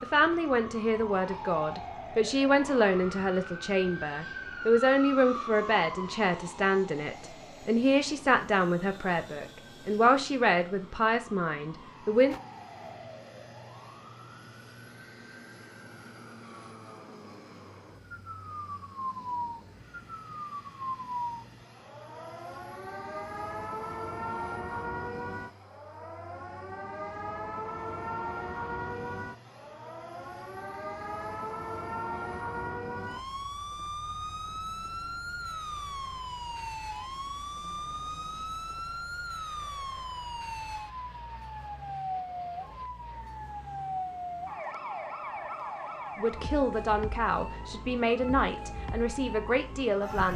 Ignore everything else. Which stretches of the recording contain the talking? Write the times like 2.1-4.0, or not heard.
0.0-12.3, 46.1-50.3.